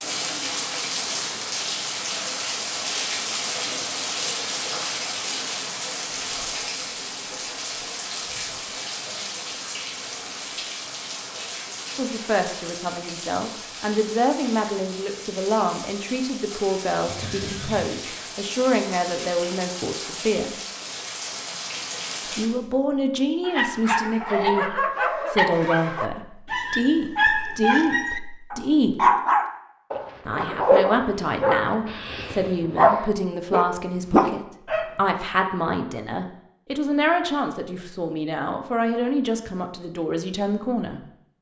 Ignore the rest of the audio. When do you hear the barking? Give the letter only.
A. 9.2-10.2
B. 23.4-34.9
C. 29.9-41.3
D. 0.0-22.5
B.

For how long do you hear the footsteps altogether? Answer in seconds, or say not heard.
not heard.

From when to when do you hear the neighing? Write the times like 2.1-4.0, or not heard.
17.1-17.9.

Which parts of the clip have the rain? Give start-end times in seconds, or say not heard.
0.0-22.5.